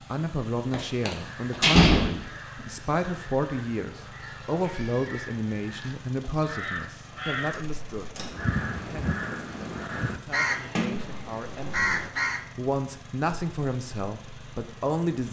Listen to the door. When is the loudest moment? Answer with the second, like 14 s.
2 s.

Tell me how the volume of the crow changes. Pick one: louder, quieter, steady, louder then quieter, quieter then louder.
louder.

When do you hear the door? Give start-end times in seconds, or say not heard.
0.7-2.1, 7.5-8.3, 10.8-11.9.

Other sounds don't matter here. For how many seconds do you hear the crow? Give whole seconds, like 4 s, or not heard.
11 s.